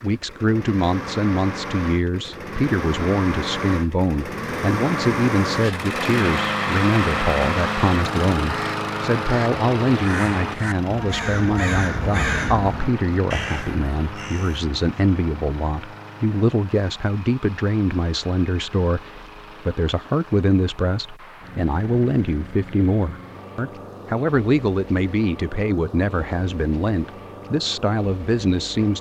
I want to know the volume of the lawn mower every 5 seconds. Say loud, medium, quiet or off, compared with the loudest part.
medium, loud, medium, quiet, quiet, quiet.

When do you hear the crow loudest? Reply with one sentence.
The volume of the crow peaks at 12 seconds.